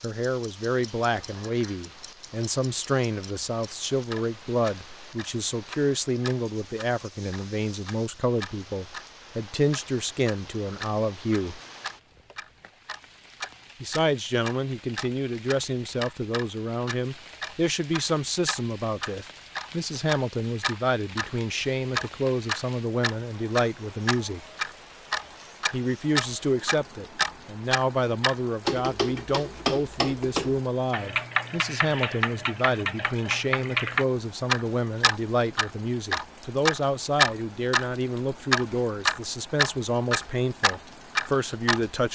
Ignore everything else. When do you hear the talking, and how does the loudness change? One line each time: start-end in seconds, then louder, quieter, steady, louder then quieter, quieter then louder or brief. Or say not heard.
0.0-11.6 steady
13.8-24.4 steady
25.7-42.0 steady.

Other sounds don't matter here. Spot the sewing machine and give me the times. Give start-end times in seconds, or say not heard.
not heard.